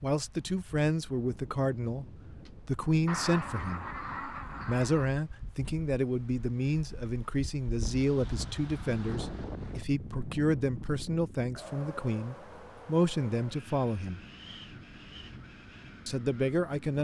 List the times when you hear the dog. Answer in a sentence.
The dog can't be heard in this clip.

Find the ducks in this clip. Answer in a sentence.
You can hear the ducks from 3.0 to 5.1 s.